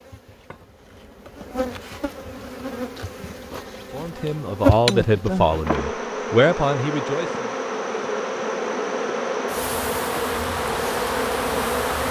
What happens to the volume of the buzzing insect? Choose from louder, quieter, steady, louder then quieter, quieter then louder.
louder.